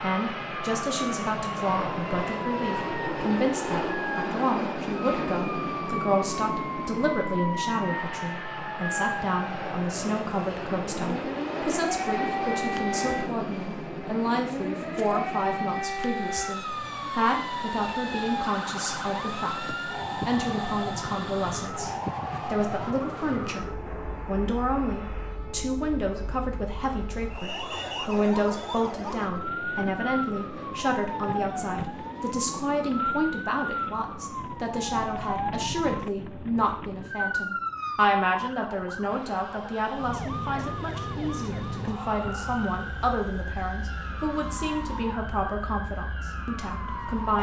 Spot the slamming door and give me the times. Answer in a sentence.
The slamming door can't be heard in this clip.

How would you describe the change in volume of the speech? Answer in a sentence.
The loudness of the speech stays about the same.